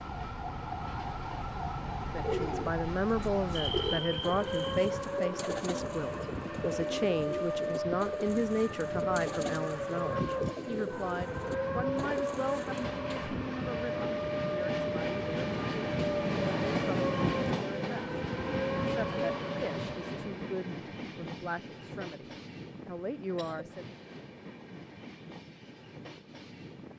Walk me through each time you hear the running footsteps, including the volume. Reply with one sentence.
The running footsteps can't be heard in this clip.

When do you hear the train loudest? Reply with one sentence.
The volume of the train peaks at 17 seconds.